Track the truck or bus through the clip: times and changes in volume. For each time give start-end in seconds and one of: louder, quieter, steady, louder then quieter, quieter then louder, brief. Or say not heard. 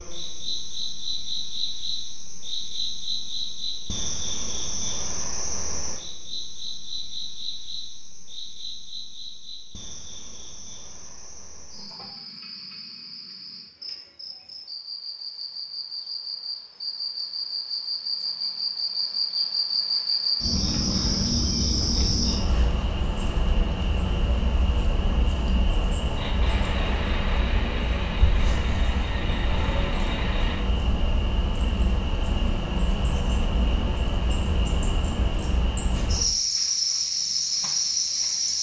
26.1-30.6 steady.